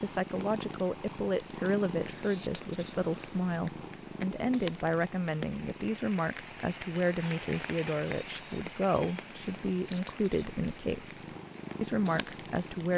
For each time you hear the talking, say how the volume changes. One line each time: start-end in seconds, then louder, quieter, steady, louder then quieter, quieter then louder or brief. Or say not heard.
0.0-12.9 steady.